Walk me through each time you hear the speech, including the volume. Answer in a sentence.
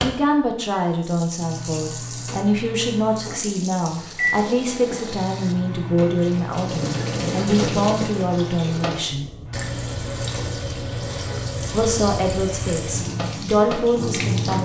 You can hear the speech from 0.0 to 9.2 s, at a steady volume; and briefly from 11.7 to 14.6 s.